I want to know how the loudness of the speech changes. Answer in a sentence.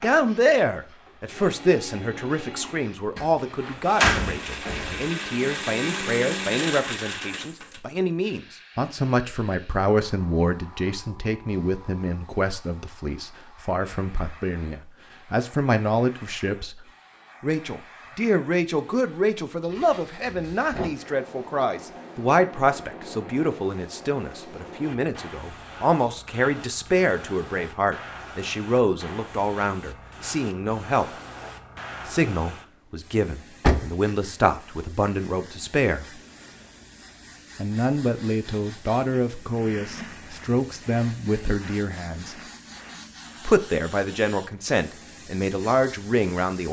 The loudness of the speech stays about the same.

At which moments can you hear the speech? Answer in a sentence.
The speech can be heard from 0.0 to 16.8 s, from 17.4 to 31.1 s, from 32.0 to 36.0 s, from 37.5 to 42.4 s and from 43.5 to 46.6 s.